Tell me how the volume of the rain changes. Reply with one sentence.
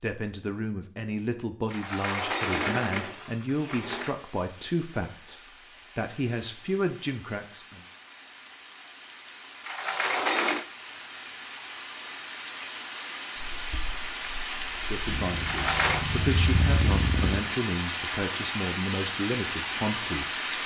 The volume of the rain goes up.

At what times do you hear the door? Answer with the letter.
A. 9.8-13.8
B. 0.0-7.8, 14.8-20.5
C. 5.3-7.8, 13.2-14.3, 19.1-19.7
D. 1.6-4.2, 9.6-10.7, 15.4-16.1
D.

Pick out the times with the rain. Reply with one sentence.
You can hear the rain from 3.5 to 20.6 s.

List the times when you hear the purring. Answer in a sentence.
You can hear the purring from 13.3 to 17.4 s.